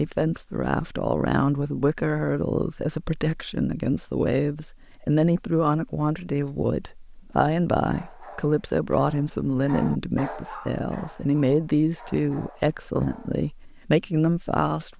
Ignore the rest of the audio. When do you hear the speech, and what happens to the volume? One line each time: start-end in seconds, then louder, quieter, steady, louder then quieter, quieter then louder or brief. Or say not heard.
0.0-14.9 steady.